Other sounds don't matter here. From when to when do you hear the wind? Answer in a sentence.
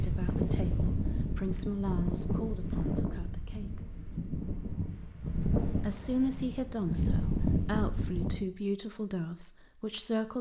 You can hear the wind from 0.0 to 8.4 s.